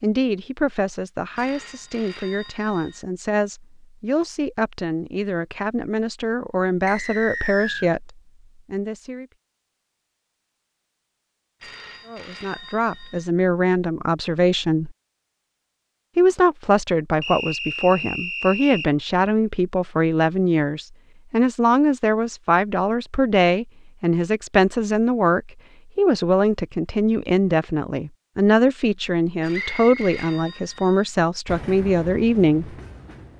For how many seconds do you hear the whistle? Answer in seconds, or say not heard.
3 s.